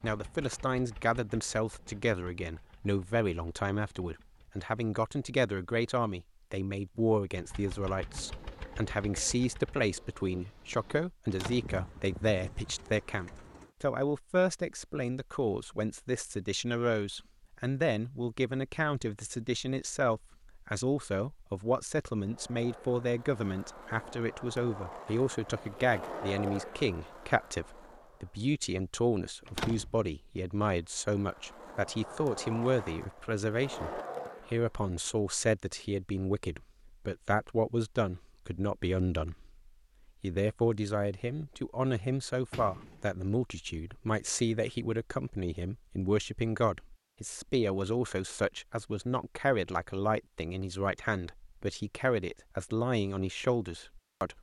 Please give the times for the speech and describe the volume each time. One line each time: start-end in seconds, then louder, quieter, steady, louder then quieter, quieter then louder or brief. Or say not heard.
0.0-54.3 steady.